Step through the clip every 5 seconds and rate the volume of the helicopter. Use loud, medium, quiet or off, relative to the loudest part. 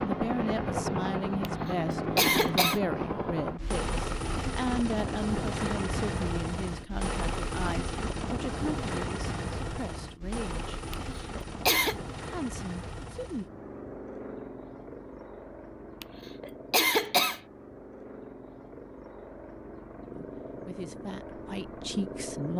loud, loud, medium, quiet, medium.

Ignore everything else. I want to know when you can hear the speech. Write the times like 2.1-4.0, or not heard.
0.0-10.8, 12.3-13.4, 20.1-22.5.